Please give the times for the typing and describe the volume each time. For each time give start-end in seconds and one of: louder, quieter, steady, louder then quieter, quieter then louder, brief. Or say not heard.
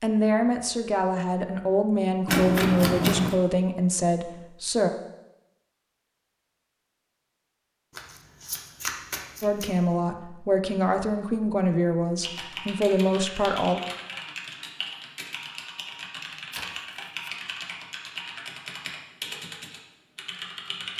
12.2-20.9 steady.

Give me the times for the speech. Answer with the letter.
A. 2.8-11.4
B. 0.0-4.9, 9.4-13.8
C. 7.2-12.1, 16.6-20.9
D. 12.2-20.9
B.